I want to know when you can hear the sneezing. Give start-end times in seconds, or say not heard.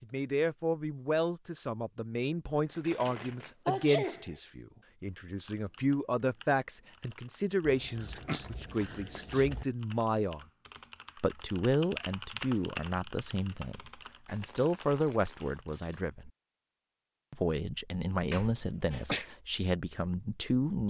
3.6-4.3, 8.0-9.4, 18.3-19.2.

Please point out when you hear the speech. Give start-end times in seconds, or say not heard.
0.0-10.4, 11.2-16.3, 17.3-20.8.